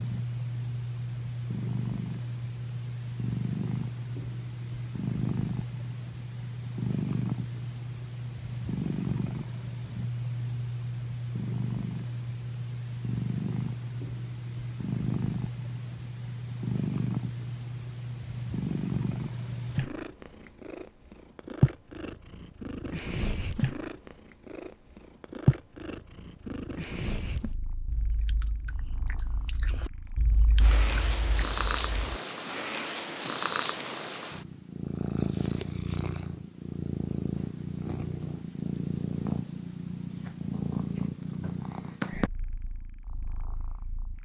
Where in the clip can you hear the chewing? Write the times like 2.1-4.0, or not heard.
27.2-32.2.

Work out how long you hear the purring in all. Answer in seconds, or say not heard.
44 s.